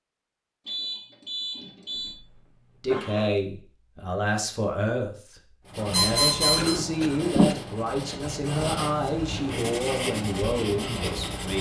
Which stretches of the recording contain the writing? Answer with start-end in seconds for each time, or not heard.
5.7-11.5.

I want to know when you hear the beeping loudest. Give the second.
6 s.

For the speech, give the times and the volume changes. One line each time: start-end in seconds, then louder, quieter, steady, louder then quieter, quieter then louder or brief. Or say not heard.
2.8-11.5 steady.